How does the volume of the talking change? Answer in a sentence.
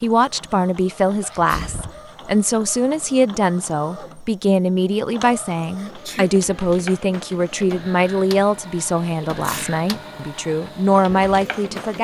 The volume of the talking stays about the same.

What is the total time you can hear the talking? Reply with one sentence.
You can hear the talking for 12 seconds altogether.